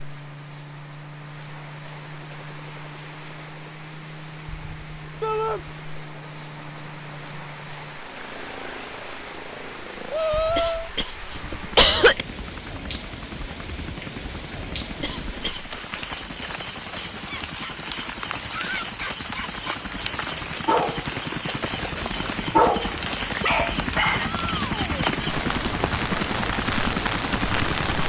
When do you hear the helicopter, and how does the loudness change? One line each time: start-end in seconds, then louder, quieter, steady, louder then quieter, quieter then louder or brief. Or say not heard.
0.0-28.0 louder.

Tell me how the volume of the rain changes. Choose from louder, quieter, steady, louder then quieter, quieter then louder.
louder.